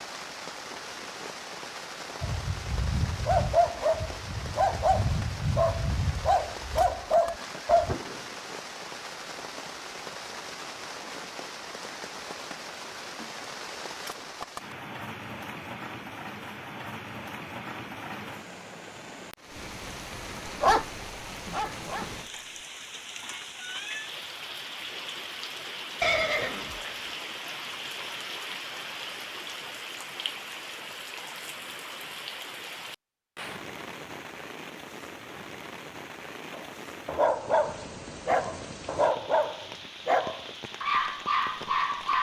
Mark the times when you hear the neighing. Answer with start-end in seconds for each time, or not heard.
6.8-8.3, 26.0-26.9.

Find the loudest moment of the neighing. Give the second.
26 s.